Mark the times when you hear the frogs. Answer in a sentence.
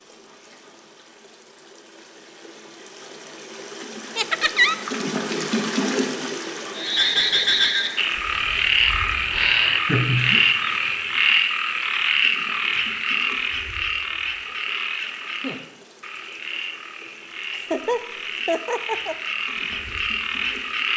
The frogs can be heard from 6.8 to 20.9 s.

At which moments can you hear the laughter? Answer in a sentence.
You can hear the laughter from 4.2 to 4.8 s, from 9.8 to 10.4 s and from 17.5 to 19.1 s.